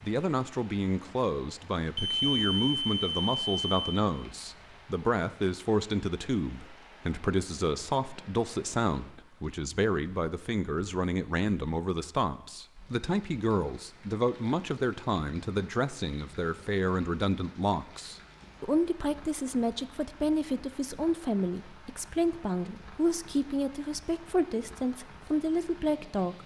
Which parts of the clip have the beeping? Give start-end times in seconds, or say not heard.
1.9-4.0.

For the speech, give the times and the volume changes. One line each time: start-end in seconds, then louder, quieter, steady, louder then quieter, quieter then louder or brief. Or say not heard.
0.0-26.4 steady.